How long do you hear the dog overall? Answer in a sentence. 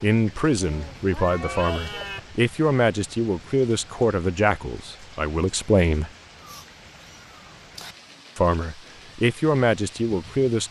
The dog can't be heard in this clip.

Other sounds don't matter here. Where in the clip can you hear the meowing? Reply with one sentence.
The meowing can be heard from 0.6 to 2.2 s and from 6.4 to 8.0 s.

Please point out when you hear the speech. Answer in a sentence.
You can hear the speech from 0.0 to 6.1 s and from 8.3 to 10.6 s.